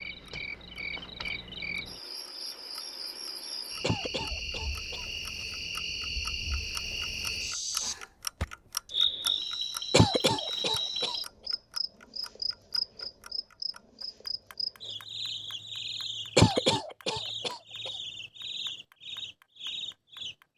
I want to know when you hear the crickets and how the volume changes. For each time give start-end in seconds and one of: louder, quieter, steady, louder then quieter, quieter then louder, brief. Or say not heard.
0.0-20.4 louder then quieter.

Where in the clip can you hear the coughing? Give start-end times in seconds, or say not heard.
3.8-5.0, 9.9-11.2, 16.4-17.9.